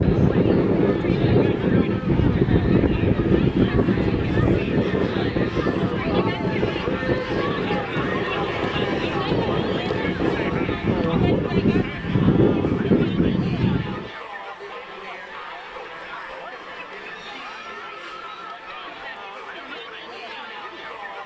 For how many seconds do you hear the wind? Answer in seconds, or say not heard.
14 s.